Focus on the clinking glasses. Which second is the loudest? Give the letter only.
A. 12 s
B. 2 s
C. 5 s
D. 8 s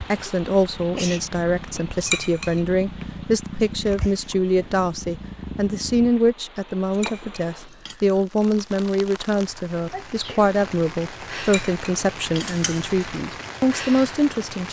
B.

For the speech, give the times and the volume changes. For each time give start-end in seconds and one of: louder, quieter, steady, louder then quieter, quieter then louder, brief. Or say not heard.
0.0-14.6 steady.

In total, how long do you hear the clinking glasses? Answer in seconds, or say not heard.
4 s.